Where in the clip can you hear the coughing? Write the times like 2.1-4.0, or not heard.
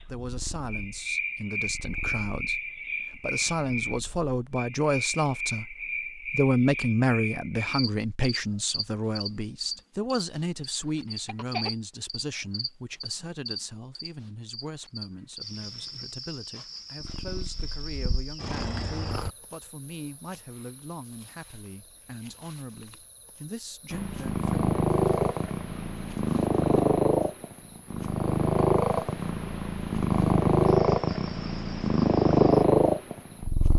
11.2-11.7.